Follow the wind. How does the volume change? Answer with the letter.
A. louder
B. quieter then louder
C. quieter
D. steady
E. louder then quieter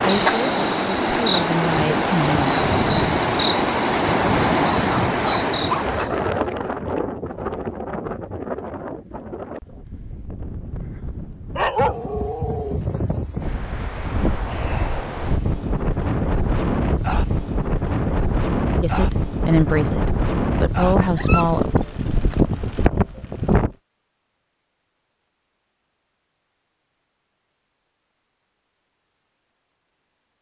B.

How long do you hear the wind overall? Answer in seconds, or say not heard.
24 s.